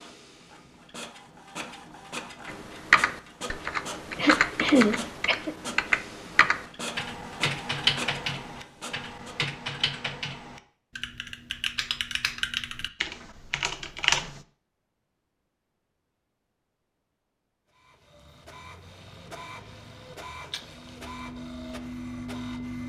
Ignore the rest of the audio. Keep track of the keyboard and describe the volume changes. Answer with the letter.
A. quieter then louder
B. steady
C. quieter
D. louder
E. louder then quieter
C.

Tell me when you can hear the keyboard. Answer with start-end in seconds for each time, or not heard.
2.5-14.4.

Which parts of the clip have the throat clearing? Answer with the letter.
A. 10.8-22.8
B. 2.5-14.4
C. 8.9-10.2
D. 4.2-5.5
D.